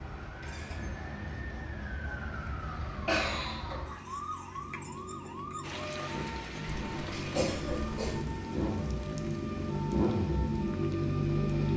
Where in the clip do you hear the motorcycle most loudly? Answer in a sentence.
The volume of the motorcycle peaks at 11 seconds.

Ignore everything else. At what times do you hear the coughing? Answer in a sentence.
The coughing can be heard from 2.6 to 4.0 s and from 6.7 to 8.2 s.